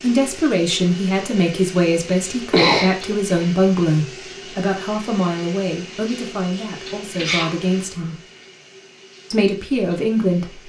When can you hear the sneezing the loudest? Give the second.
3 s.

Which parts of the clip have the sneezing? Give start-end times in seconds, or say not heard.
2.5-3.5, 7.2-7.6.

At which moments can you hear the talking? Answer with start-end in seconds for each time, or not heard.
0.0-8.2, 9.3-10.6.